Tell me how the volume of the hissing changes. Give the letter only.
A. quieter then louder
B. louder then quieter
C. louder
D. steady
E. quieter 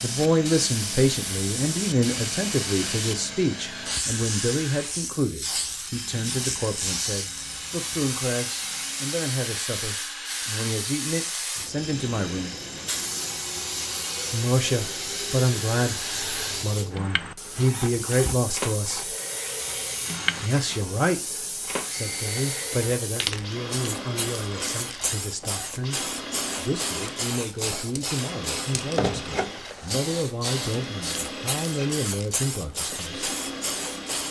D.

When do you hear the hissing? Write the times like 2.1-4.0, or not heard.
0.0-34.2.